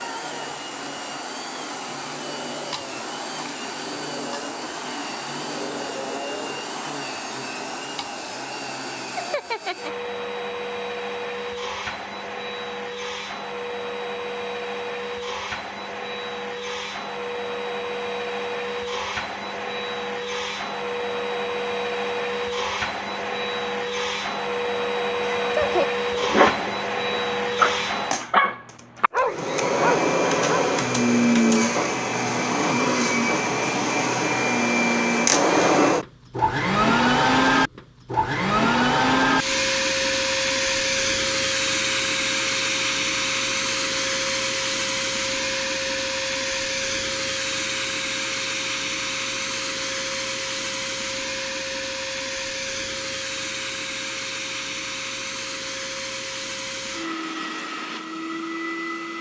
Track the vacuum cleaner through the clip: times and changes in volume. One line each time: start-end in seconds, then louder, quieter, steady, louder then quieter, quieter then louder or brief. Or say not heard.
0.0-59.1 louder then quieter.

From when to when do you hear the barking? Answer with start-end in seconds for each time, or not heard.
25.2-30.7.